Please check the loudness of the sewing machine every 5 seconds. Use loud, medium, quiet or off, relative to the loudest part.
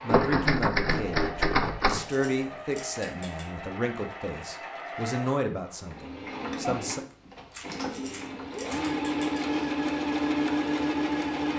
quiet, medium, loud.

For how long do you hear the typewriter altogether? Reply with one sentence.
The typewriter can be heard for 4 seconds in total.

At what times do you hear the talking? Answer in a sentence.
The talking can be heard from 0.0 to 7.0 s.